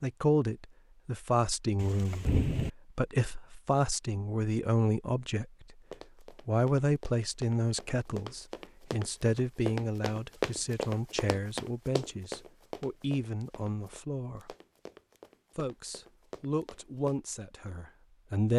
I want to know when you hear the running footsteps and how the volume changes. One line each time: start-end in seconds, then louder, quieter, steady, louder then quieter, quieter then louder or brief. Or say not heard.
5.9-17.2 louder then quieter.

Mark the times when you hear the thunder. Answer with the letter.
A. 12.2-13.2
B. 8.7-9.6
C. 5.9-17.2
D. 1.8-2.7
D.